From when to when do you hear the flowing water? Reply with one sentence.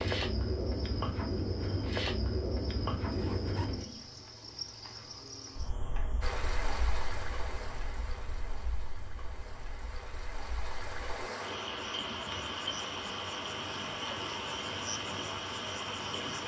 The flowing water can be heard from 6.2 to 16.4 s.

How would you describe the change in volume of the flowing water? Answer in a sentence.
The volume of the flowing water goes down, then up.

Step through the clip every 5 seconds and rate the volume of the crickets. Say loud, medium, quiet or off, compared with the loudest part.
loud, quiet, quiet, medium.